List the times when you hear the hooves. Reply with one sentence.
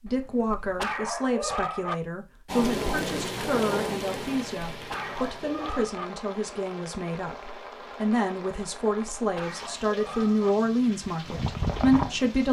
The hooves can be heard from 11.1 to 12.4 s.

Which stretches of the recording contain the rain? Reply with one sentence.
The rain can be heard from 2.5 to 12.4 s.